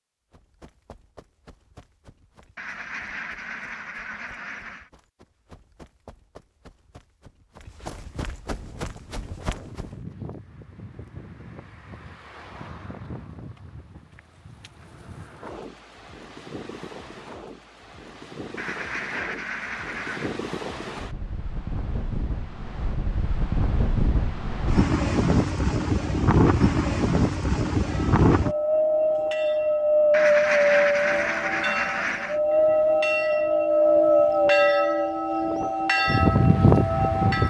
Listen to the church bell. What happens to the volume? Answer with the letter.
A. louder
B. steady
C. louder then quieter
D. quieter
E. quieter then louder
A.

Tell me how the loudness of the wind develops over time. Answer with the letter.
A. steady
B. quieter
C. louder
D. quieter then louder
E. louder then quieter
C.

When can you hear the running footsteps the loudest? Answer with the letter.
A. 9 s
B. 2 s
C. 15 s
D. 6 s
A.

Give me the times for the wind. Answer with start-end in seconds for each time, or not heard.
8.6-37.4.